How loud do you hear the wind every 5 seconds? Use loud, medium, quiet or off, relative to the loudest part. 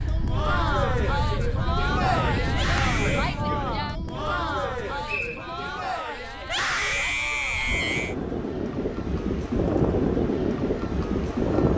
medium, medium, loud.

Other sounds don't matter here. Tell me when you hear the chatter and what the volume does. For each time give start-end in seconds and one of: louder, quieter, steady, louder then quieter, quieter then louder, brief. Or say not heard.
0.1-11.7 quieter.